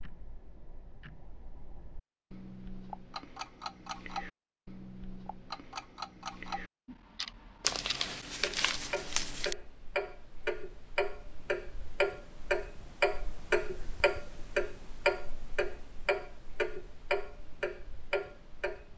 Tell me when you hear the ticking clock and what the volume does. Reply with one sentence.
You can hear the ticking clock from 0.0 to 18.9 s, getting louder.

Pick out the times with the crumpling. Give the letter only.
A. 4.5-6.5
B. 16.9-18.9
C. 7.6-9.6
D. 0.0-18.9
C.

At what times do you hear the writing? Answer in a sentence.
You can't hear the writing here.